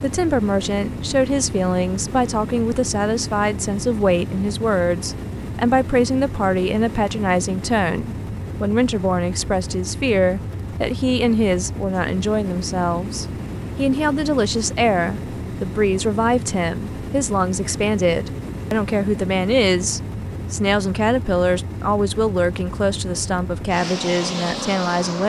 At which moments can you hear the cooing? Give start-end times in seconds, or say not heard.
not heard.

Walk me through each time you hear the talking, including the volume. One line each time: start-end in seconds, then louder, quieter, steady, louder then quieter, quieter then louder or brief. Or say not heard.
0.0-25.2 steady.